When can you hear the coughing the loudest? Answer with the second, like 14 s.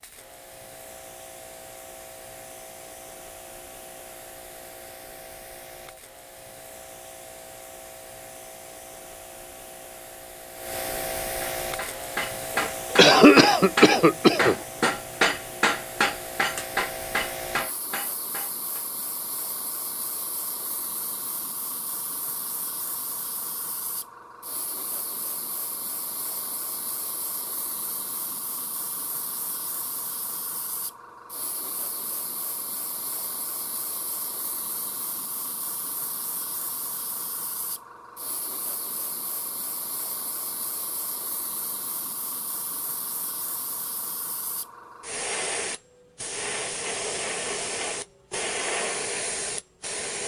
13 s.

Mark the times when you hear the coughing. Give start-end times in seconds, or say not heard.
12.6-14.6.